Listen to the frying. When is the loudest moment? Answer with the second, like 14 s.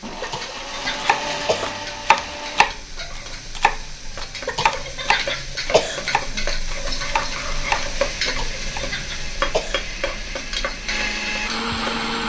8 s.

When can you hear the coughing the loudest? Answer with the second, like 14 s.
6 s.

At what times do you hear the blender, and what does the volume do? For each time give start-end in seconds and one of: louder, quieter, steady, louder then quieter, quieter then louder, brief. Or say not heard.
0.0-2.7 brief
7.0-12.2 louder.